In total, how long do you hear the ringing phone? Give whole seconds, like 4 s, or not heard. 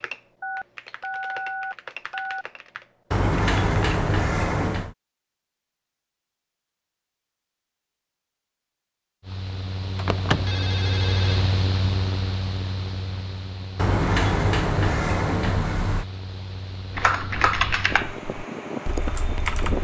3 s.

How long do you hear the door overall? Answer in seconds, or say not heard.
5 s.